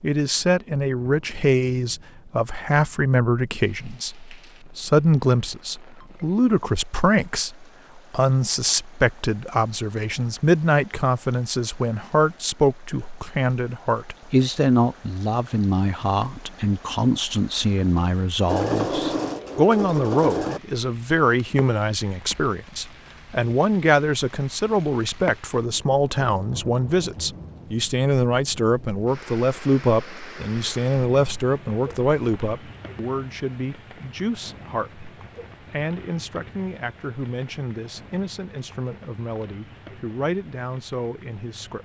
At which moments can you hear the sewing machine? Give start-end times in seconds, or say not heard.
18.4-20.6.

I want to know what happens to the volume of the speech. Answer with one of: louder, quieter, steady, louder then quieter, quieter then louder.
quieter.